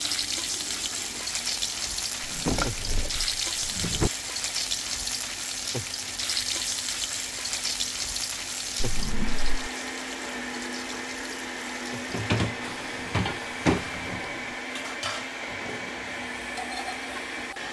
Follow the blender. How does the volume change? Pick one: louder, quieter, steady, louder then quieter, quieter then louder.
louder.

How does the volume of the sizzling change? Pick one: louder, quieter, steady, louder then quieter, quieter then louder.
quieter.